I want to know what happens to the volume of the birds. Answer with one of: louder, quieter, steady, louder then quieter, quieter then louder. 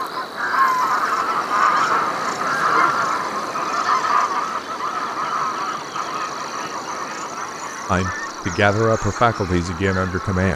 quieter.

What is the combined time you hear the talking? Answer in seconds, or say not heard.
3 s.